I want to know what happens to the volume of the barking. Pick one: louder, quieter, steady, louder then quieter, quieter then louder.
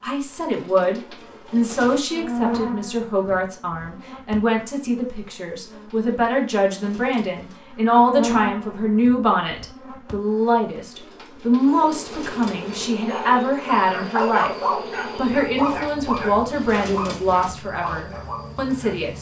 quieter.